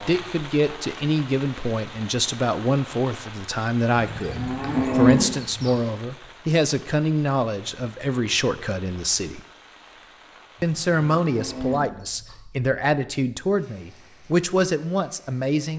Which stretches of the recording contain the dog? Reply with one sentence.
The dog can't be heard in this clip.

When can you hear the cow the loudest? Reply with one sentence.
The loudest moment of the cow is at 5 seconds.